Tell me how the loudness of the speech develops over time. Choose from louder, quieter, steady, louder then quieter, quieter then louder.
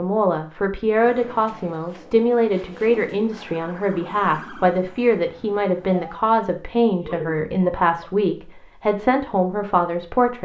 steady.